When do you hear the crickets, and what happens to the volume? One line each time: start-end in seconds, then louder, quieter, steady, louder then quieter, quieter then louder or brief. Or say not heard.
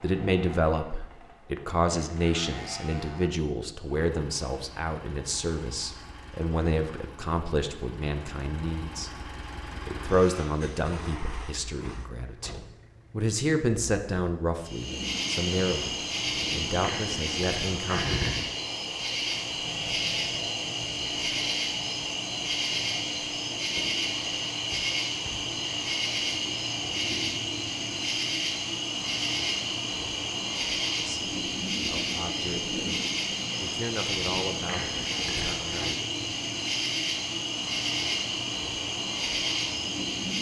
14.6-40.3 steady.